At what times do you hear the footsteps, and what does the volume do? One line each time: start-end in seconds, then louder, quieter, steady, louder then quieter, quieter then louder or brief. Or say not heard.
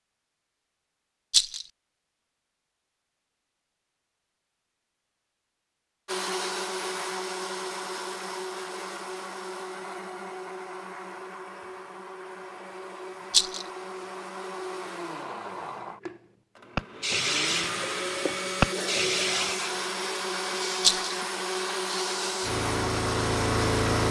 not heard.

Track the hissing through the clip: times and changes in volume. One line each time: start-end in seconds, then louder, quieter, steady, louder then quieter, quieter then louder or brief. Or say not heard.
16.8-24.0 quieter then louder.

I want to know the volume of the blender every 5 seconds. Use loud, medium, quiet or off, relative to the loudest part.
off, loud, medium, loud, loud.